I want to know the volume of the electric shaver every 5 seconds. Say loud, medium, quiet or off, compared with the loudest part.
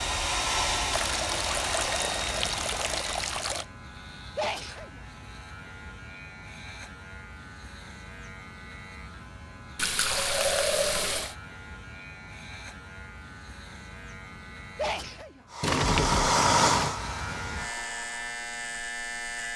medium, medium, medium, loud.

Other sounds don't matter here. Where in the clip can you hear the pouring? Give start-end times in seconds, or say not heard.
0.9-3.6, 9.8-11.3, 15.6-16.9.